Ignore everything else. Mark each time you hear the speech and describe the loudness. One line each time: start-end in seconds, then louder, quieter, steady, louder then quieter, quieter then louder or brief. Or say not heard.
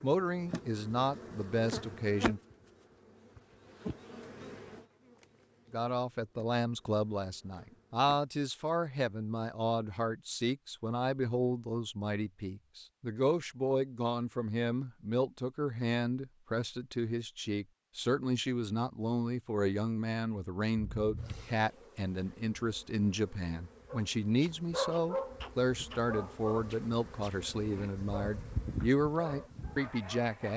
0.0-2.4 brief
5.7-30.5 steady.